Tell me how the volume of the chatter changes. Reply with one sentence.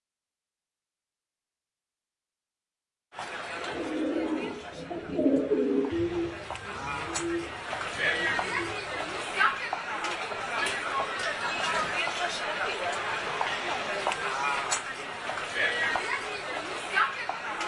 The volume of the chatter goes up.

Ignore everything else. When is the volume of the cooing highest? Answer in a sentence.
The loudest moment of the cooing is at 5 seconds.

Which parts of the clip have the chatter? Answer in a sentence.
The chatter can be heard from 3.1 to 17.6 s.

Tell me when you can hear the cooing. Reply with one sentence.
The cooing can be heard from 3.4 to 9.3 s.